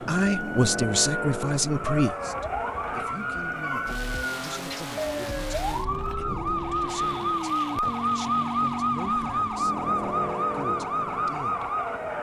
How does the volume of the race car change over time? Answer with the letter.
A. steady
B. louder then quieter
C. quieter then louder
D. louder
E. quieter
A.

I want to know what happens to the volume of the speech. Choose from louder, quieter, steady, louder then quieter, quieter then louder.
quieter.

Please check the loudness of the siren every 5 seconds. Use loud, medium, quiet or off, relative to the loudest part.
medium, loud, loud.